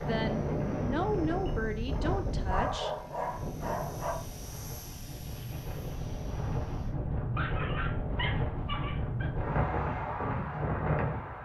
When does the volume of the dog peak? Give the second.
3 s.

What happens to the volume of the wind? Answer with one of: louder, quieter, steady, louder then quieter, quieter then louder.
quieter then louder.